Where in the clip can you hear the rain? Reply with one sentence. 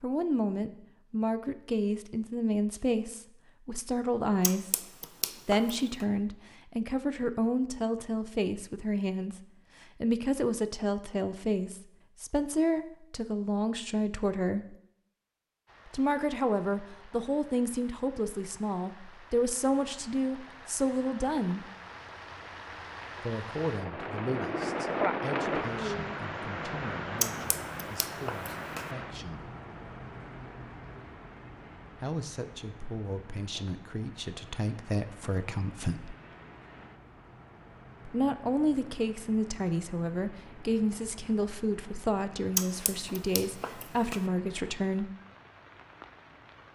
You can hear the rain from 15.7 to 46.6 s.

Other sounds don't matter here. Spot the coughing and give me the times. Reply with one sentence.
You can't hear the coughing here.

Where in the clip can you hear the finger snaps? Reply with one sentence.
You can hear the finger snaps from 4.4 to 6.0 s, from 27.2 to 28.9 s and from 42.5 to 44.2 s.